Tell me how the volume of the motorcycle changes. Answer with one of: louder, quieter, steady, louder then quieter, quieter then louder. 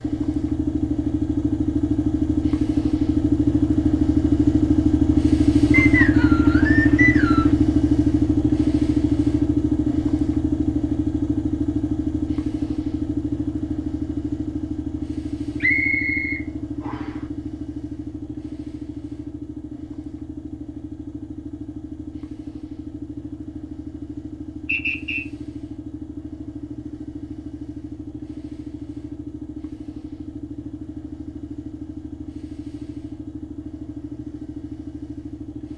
quieter.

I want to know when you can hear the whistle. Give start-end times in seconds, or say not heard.
5.7-7.5, 15.6-17.1, 24.6-25.2.